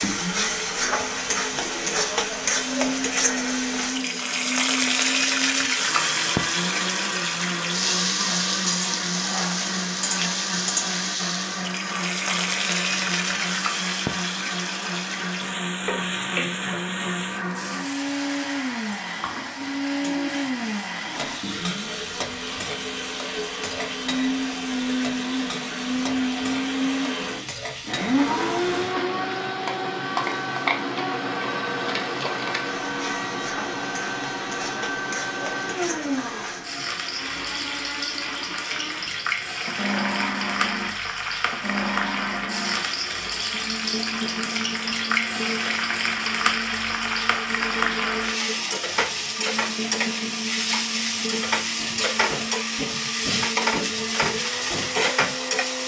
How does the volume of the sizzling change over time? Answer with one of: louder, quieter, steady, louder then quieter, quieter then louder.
quieter then louder.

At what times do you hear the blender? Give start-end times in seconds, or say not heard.
0.0-55.8.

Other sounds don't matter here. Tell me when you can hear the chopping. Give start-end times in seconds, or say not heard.
not heard.